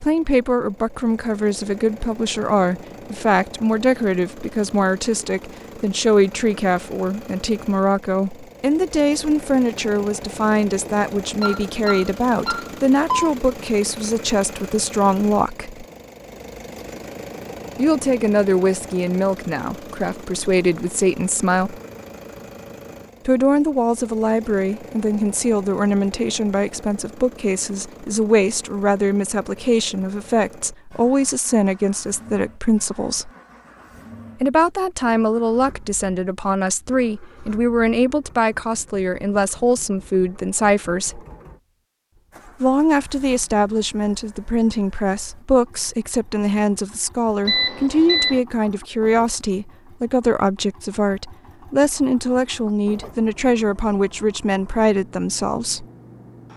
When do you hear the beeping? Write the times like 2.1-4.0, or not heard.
11.4-13.3, 47.5-48.4.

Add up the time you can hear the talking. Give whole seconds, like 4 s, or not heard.
50 s.